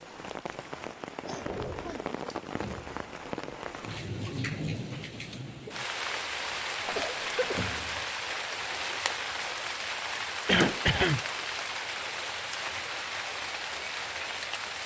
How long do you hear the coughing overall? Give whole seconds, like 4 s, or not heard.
3 s.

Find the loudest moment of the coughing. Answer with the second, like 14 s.
11 s.